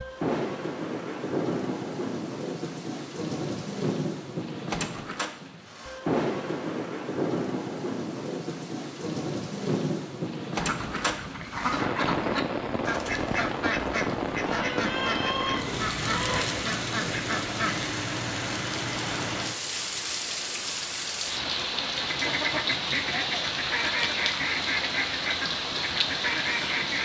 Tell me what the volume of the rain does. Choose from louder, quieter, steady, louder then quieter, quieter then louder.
steady.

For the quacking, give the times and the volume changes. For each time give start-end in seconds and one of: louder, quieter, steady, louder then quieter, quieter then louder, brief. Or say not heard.
10.6-17.9 steady
22.0-27.0 steady.